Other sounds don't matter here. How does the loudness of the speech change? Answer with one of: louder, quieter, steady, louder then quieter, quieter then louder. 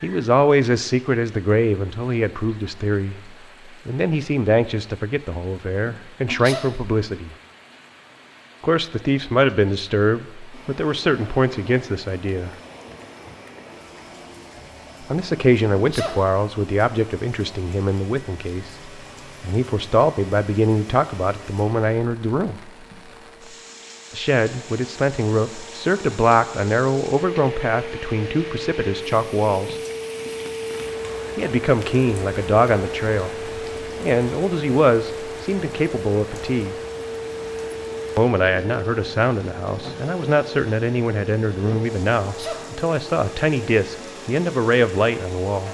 steady.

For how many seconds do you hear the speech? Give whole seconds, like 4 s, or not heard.
37 s.